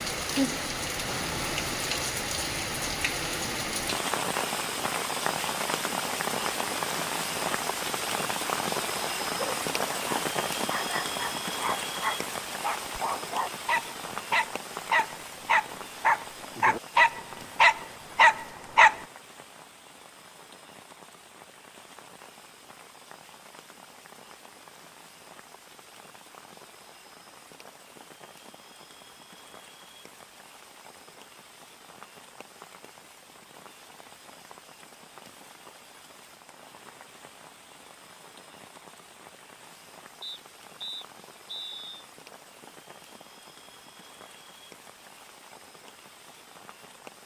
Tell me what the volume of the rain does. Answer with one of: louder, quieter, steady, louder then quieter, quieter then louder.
quieter.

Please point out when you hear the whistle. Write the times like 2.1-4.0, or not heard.
40.2-42.0.